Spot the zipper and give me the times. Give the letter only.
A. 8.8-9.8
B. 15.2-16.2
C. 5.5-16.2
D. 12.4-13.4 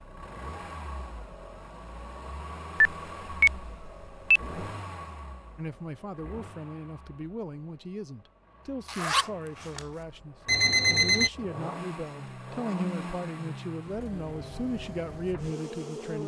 A.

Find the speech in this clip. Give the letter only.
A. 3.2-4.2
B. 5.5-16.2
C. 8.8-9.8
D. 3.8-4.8
B.